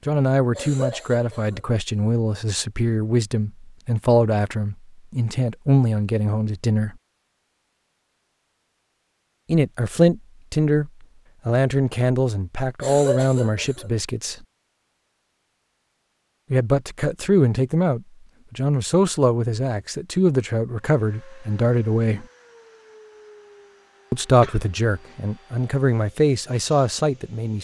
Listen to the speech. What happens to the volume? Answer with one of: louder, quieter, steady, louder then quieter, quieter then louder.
steady.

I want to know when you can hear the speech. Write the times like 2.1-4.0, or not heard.
0.1-7.0, 9.4-14.3, 16.5-22.2, 24.1-27.5.